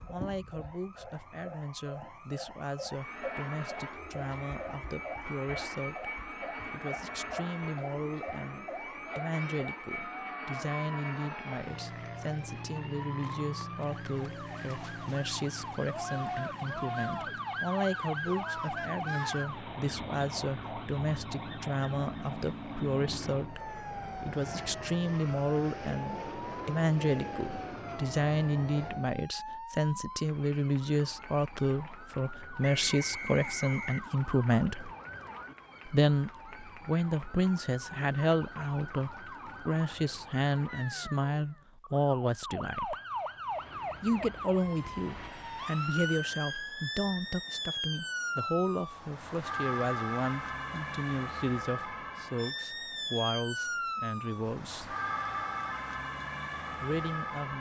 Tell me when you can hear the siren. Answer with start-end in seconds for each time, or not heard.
0.0-57.5.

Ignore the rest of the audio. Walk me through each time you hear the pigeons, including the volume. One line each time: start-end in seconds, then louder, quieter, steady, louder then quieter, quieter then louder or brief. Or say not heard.
not heard.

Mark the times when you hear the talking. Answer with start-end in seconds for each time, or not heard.
0.1-34.9, 35.9-43.0, 44.0-55.0, 56.8-57.5.